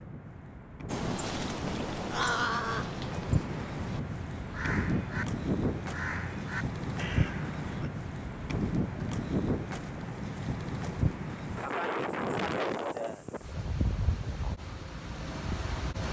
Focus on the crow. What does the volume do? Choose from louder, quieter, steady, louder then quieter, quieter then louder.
quieter.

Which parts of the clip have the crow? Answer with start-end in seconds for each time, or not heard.
0.8-7.9.